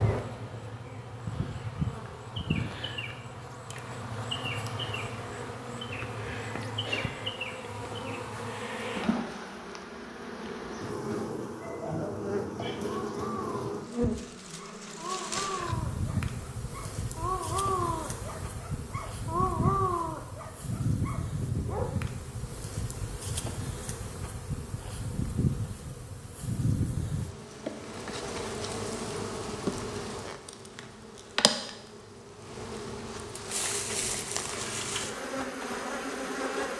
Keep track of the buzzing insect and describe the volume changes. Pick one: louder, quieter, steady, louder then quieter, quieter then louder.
steady.